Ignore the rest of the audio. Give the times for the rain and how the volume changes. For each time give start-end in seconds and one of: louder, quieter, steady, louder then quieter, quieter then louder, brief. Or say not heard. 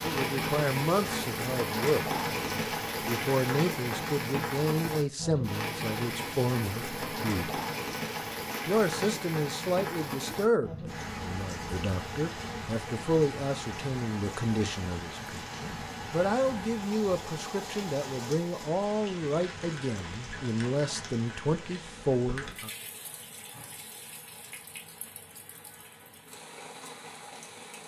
0.0-27.8 quieter.